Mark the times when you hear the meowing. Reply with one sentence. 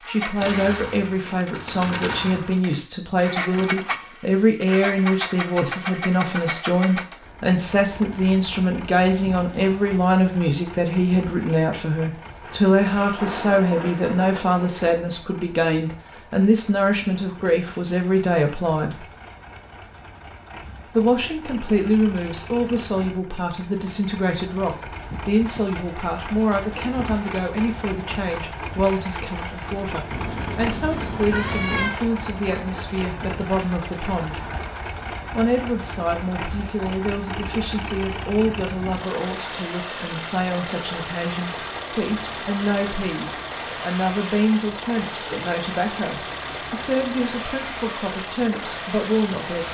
You can hear the meowing from 30.1 to 32.0 s.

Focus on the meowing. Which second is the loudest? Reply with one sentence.
The volume of the meowing peaks at 32 seconds.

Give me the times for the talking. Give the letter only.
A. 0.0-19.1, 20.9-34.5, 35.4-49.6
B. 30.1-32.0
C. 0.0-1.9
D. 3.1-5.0
A.